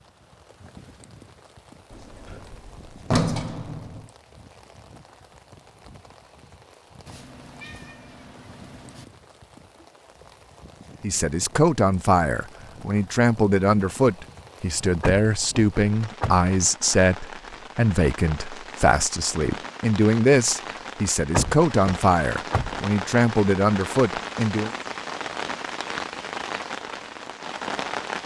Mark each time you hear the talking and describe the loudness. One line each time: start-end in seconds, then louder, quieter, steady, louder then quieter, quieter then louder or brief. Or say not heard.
11.0-24.7 steady.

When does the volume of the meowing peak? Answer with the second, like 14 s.
8 s.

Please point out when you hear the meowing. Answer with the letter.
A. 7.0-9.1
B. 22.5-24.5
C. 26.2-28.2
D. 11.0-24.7
A.